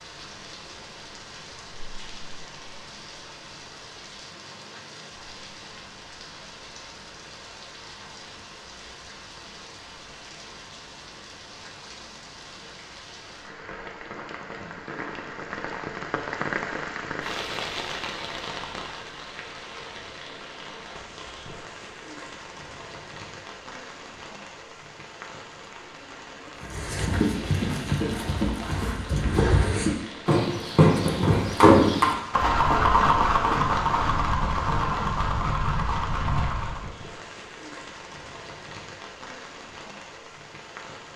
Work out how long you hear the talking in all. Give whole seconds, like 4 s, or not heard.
not heard.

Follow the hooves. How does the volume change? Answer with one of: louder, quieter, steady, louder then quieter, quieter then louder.
louder then quieter.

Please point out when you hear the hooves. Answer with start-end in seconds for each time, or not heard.
26.6-36.9.